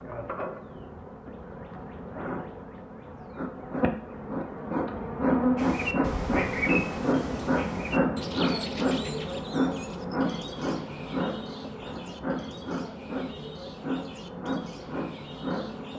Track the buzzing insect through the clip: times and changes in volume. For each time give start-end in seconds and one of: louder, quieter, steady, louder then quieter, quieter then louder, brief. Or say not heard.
0.0-15.9 louder then quieter.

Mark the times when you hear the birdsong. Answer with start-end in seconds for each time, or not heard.
5.5-15.9.